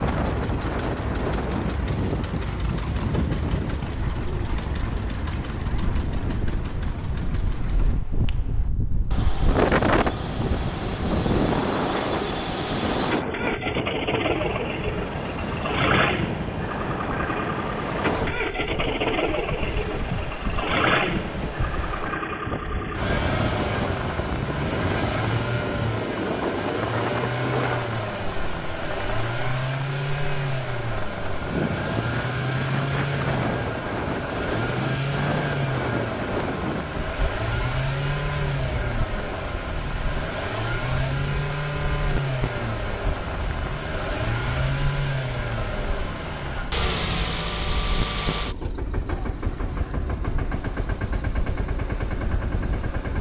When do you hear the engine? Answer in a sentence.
You can hear the engine from 0.0 to 53.1 s.